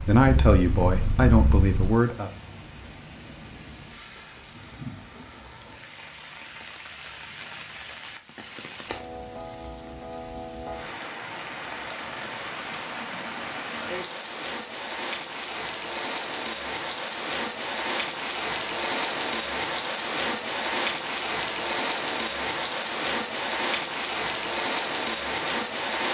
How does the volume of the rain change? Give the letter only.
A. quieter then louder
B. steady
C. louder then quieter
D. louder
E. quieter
D.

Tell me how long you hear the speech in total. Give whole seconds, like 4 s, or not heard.
2 s.